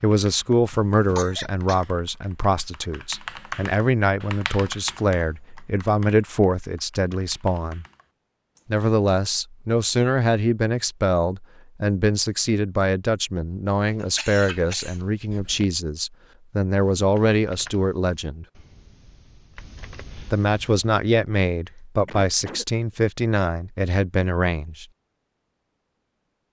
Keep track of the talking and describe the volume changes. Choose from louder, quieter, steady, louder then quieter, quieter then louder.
steady.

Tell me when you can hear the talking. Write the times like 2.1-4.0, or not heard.
0.0-7.8, 8.7-18.4, 20.3-24.9.